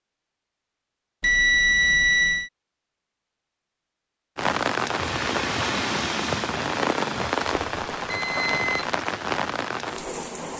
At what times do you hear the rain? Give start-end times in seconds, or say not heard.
4.3-10.5.